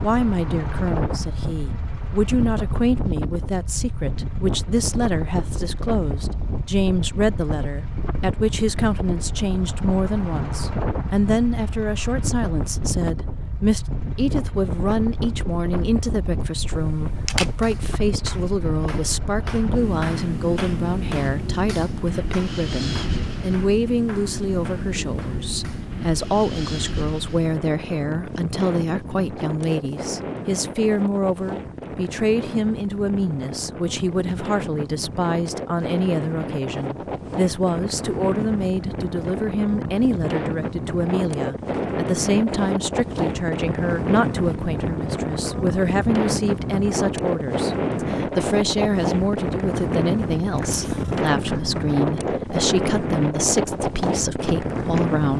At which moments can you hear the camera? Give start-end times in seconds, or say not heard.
16.6-17.8, 50.5-51.3.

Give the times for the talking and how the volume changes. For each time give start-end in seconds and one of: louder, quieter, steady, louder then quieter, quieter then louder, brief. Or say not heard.
0.0-55.3 steady.